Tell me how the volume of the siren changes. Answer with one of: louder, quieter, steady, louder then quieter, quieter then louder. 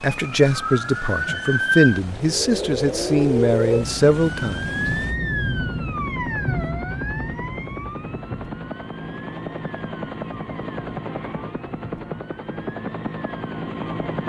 quieter.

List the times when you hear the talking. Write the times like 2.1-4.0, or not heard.
0.0-4.7.